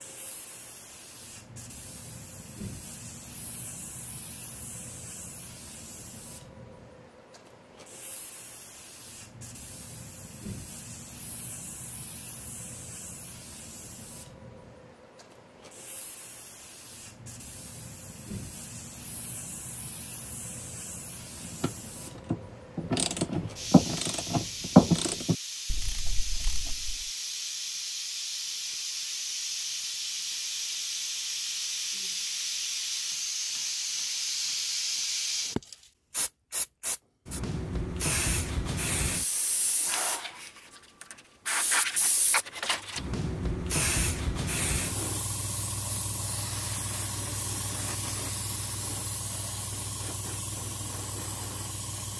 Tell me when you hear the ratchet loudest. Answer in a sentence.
The loudest moment of the ratchet is at 25 seconds.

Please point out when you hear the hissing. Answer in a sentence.
The hissing can be heard from 0.0 to 52.1 s.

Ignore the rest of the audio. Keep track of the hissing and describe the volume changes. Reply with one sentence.
The loudness of the hissing goes up.